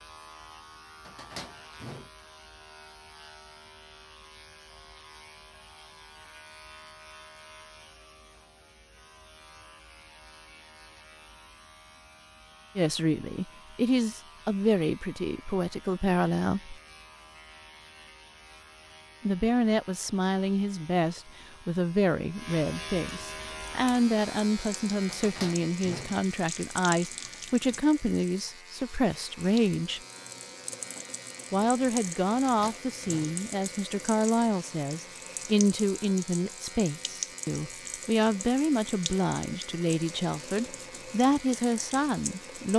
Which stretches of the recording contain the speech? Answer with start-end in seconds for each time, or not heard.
12.8-16.8, 19.2-30.0, 31.5-42.7.